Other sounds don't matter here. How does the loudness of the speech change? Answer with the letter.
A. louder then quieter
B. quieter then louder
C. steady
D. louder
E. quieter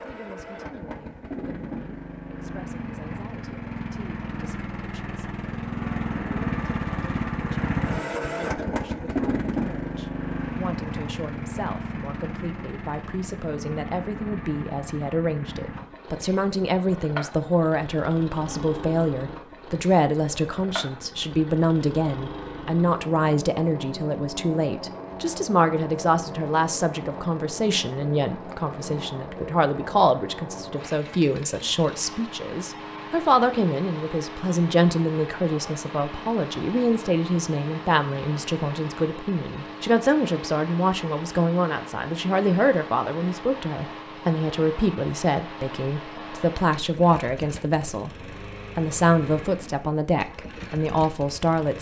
D.